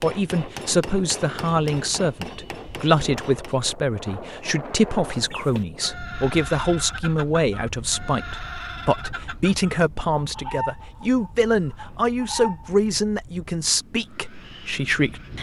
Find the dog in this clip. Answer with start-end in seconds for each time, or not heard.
not heard.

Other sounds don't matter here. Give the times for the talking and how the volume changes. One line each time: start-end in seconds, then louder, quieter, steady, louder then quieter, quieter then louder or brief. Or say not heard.
0.0-15.3 steady.